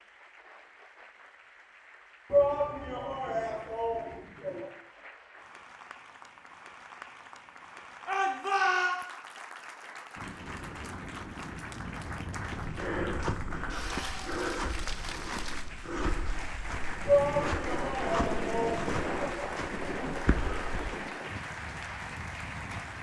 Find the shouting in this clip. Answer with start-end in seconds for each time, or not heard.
2.3-4.7, 8.1-8.9, 17.1-19.5.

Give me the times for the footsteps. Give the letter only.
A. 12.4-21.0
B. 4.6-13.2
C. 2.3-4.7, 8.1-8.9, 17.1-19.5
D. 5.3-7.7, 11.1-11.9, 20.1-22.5
A.